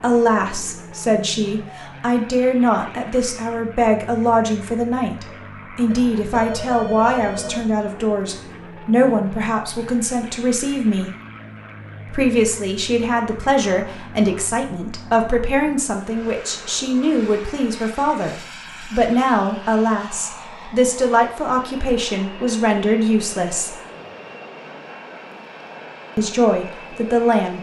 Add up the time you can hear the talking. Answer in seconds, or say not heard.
24 s.